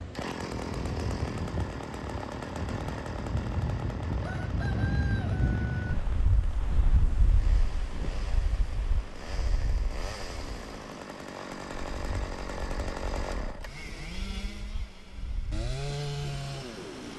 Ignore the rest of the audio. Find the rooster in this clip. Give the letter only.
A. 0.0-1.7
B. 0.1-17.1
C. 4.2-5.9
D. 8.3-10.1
C.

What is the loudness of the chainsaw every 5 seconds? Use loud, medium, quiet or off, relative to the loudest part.
loud, medium, loud, loud.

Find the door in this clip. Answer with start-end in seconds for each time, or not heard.
not heard.